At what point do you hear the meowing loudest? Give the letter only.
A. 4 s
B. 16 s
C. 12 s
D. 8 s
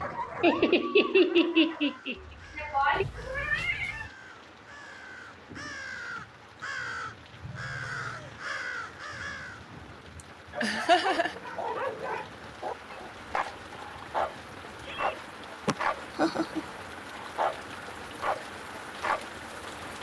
A.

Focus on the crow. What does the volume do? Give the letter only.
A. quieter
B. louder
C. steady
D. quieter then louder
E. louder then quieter
B.